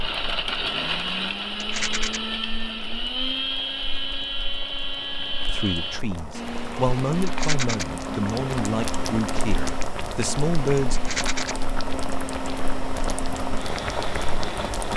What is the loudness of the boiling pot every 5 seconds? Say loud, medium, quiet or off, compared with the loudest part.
quiet, loud, loud.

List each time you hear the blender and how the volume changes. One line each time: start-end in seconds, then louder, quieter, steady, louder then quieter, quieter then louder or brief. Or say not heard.
0.0-14.9 quieter.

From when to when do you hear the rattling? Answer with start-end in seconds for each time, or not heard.
1.6-2.2, 7.2-7.8, 10.9-11.6.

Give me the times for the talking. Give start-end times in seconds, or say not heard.
5.5-11.0.